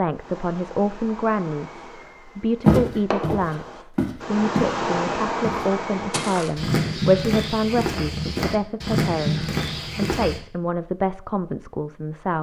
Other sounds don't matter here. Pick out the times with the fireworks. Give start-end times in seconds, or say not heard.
0.1-6.3.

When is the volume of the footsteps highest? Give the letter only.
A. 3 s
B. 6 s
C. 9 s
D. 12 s
A.